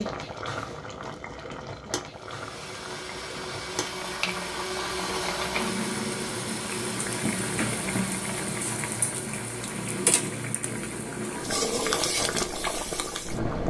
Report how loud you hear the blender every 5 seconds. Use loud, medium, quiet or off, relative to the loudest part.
loud, loud, off.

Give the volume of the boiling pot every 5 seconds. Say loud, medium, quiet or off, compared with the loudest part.
medium, loud, loud.